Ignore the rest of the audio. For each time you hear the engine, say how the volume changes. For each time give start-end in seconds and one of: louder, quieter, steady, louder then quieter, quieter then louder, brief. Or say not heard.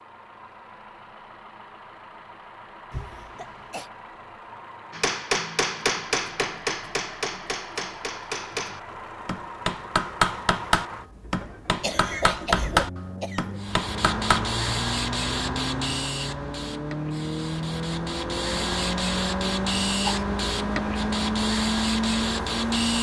0.0-22.9 louder.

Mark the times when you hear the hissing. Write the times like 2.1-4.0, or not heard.
13.6-22.9.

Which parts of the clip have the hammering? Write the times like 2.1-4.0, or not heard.
4.9-14.5.